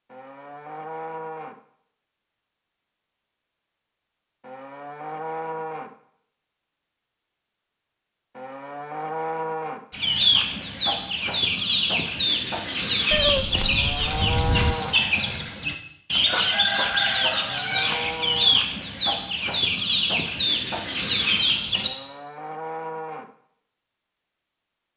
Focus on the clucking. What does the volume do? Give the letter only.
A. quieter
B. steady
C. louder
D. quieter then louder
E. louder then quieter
B.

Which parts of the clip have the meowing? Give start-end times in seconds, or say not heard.
13.1-14.8.